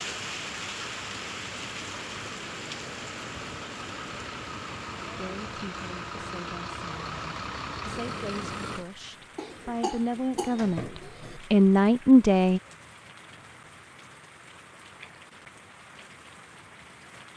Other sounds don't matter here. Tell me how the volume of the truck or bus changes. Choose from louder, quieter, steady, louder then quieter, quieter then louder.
louder.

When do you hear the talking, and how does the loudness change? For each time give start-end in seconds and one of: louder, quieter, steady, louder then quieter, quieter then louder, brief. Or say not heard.
5.2-12.6 louder.